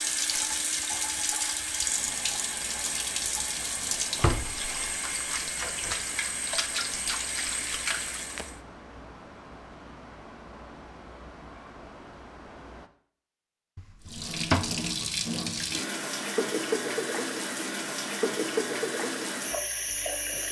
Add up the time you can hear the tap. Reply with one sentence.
You can hear the tap for 15 seconds altogether.